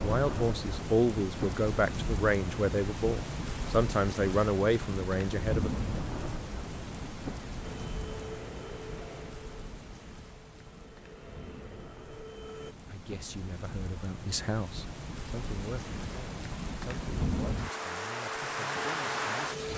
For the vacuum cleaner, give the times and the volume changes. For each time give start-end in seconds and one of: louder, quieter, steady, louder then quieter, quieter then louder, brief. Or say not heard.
7.6-12.8 quieter then louder
17.6-19.7 brief.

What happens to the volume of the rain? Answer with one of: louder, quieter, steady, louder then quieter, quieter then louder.
quieter then louder.